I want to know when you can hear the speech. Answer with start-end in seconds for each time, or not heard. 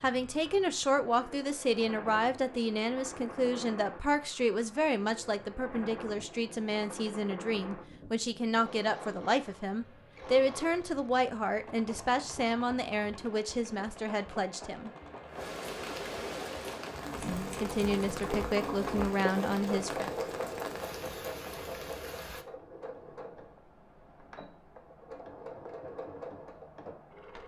0.0-14.9, 17.6-20.1.